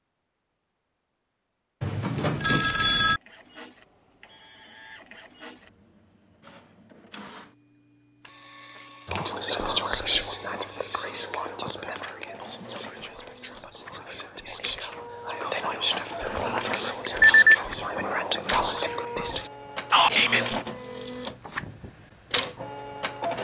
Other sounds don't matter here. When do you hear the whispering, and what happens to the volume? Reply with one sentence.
The whispering can be heard from 9.1 to 20.6 s, getting quieter then louder.